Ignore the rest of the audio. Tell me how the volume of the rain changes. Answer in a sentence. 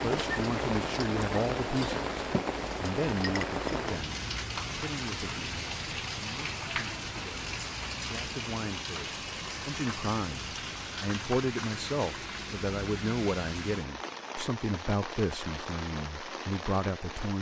The volume of the rain goes down.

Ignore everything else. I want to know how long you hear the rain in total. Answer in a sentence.
You can hear the rain for 17 seconds altogether.